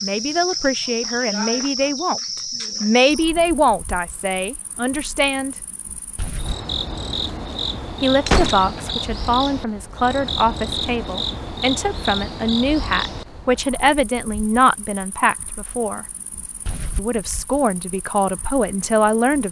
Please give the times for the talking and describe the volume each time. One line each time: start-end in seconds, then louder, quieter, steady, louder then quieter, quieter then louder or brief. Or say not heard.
0.0-2.2 brief
2.8-5.5 brief
8.0-16.1 steady
16.9-19.4 brief.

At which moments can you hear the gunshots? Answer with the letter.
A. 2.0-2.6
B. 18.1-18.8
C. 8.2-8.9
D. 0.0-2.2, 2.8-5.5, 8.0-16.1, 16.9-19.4
C.